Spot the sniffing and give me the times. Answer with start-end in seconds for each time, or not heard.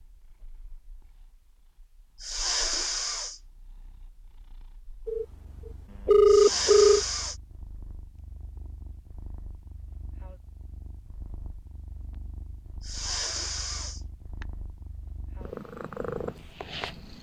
2.2-3.4, 6.2-7.3, 12.8-14.4.